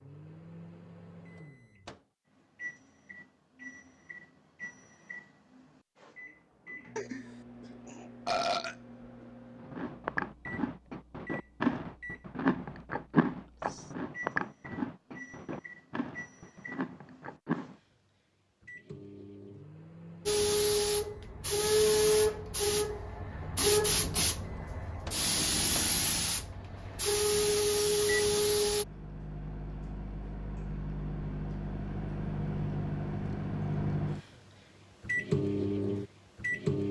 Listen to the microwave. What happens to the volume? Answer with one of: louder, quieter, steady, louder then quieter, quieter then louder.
louder.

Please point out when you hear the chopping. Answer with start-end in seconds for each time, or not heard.
not heard.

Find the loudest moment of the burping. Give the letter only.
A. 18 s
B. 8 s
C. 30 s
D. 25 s
B.